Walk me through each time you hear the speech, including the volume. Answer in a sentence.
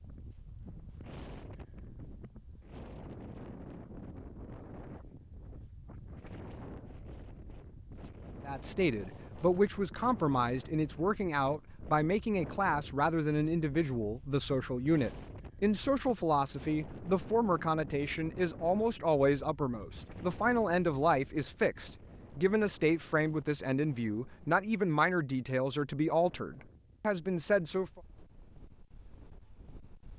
You can hear the speech from 8.4 to 28.0 s, at a steady volume.